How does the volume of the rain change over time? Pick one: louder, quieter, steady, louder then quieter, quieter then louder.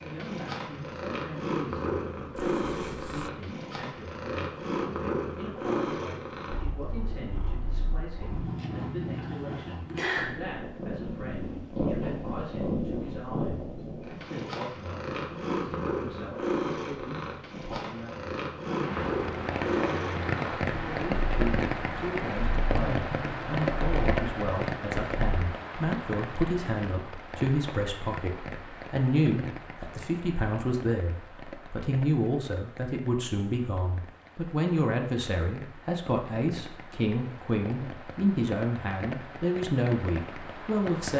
quieter then louder.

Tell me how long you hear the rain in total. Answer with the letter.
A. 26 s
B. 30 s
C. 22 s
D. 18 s
C.